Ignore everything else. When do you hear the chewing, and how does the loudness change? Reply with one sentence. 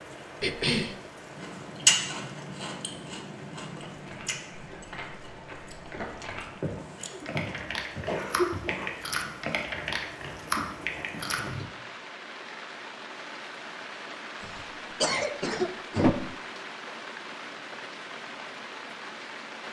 The chewing can be heard from 1.3 to 11.7 s, getting quieter then louder.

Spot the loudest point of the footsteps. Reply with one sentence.
The volume of the footsteps peaks at 7 seconds.